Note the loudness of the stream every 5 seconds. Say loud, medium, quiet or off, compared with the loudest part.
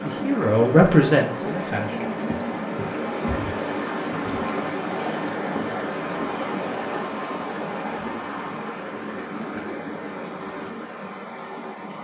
loud, loud, medium.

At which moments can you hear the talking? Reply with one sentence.
The talking can be heard from 0.0 to 2.1 s.